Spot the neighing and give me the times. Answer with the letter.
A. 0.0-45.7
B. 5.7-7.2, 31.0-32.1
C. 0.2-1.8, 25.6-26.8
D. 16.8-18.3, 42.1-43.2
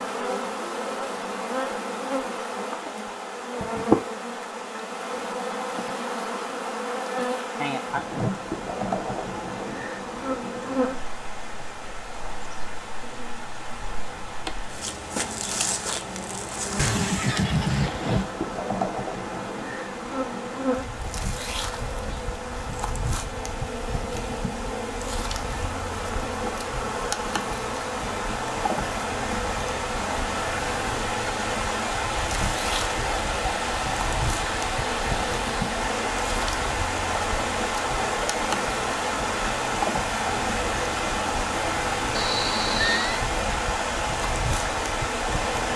D.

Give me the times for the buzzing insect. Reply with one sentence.
The buzzing insect can be heard from 0.0 to 45.7 s.